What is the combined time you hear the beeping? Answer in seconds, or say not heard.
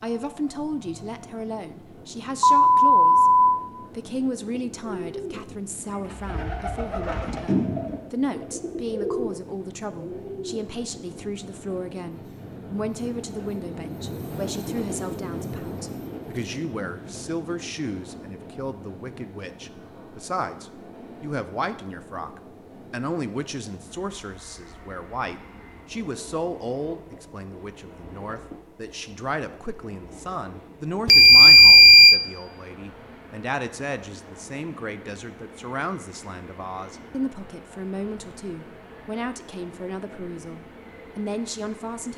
2 s.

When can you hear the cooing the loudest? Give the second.
8 s.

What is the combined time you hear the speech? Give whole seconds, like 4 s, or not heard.
42 s.